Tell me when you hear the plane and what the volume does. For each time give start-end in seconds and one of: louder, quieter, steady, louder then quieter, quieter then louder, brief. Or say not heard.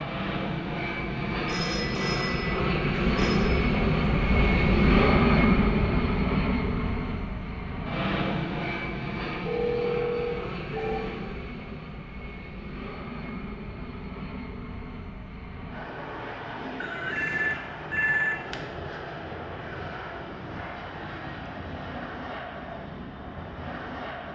0.0-24.3 quieter.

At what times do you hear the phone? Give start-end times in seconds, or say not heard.
1.4-3.5, 9.4-11.1, 16.8-18.6.